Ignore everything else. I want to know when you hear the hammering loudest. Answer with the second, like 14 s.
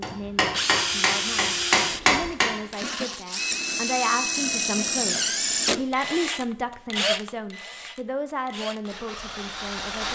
2 s.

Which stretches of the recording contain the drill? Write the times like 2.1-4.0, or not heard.
0.4-10.0.